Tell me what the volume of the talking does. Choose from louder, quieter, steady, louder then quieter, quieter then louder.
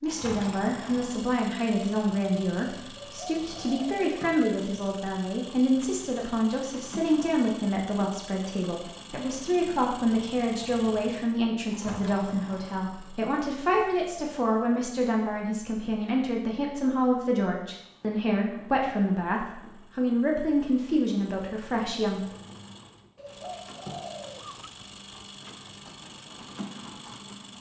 steady.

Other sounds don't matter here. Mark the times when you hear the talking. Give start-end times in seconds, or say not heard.
0.0-22.4.